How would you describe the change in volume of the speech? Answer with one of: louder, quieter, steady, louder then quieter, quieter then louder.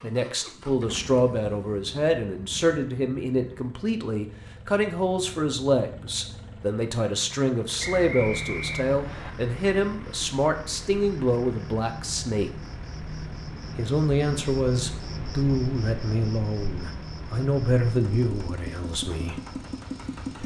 steady.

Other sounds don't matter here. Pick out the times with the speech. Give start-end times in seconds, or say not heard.
0.0-12.5, 13.8-19.4.